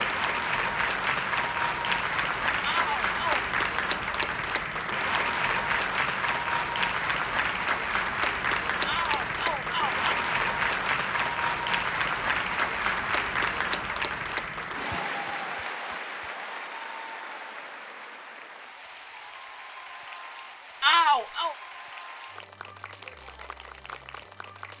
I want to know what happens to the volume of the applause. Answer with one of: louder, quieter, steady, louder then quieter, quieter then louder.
quieter.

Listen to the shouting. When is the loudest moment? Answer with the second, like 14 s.
21 s.